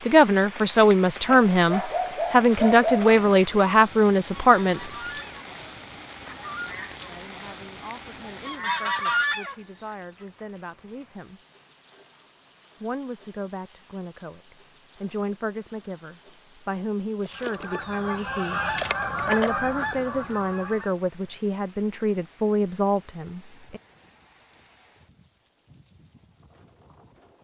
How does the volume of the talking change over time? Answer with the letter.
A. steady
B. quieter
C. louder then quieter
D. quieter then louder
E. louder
D.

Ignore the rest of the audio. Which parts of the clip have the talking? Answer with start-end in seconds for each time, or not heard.
0.1-4.8, 7.0-11.4, 12.8-23.8.